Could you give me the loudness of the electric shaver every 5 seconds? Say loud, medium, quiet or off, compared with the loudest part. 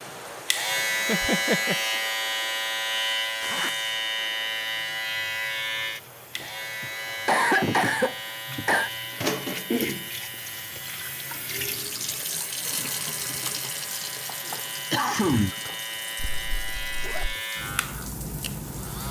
loud, medium, quiet, medium.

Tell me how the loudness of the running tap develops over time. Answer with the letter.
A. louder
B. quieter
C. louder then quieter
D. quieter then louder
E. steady
C.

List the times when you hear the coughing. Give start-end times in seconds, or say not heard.
1.1-1.8, 6.8-8.9, 14.9-15.7.